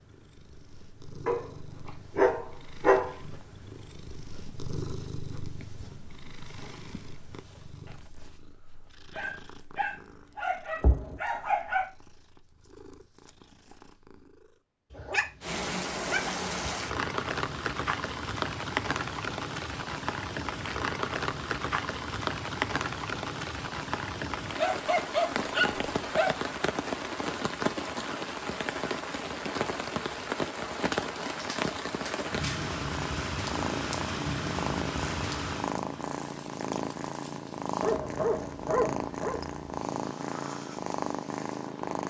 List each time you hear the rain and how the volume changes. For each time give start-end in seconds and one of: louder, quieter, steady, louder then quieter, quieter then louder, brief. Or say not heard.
15.4-42.0 quieter.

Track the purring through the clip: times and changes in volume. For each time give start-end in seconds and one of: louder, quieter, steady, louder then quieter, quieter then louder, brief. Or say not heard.
0.0-14.6 louder then quieter
32.5-42.0 steady.